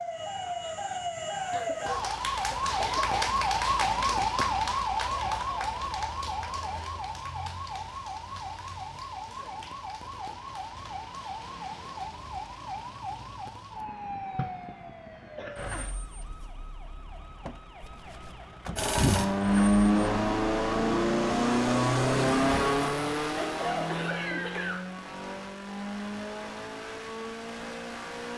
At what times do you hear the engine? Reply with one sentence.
You can hear the engine from 18.8 to 28.3 s.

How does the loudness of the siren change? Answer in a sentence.
The loudness of the siren goes down.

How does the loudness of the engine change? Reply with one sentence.
The loudness of the engine goes down.